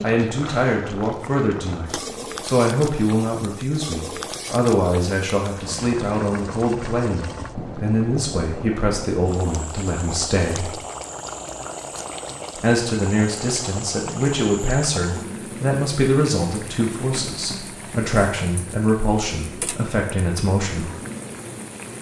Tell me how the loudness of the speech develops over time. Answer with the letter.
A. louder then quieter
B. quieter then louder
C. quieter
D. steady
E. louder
D.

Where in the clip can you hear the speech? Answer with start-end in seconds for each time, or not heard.
0.0-10.7, 12.6-20.9.